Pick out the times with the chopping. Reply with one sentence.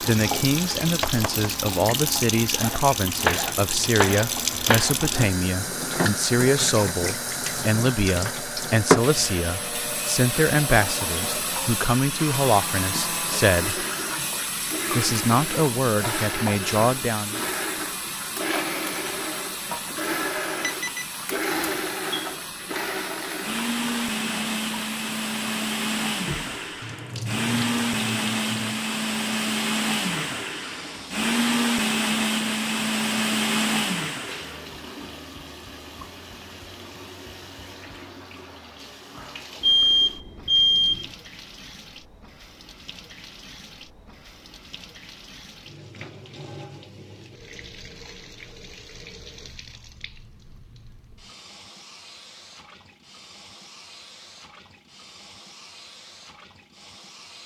The chopping can be heard from 2.6 to 5.0 s.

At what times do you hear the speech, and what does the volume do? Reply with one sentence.
You can hear the speech from 0.0 to 13.8 s, at a steady volume; and briefly from 14.9 to 17.4 s.